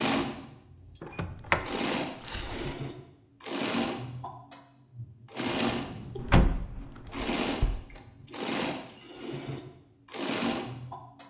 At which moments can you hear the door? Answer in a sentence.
The door can be heard from 1.0 to 2.8 s and from 6.2 to 7.8 s.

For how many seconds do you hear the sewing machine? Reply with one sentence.
You can hear the sewing machine for 11 seconds altogether.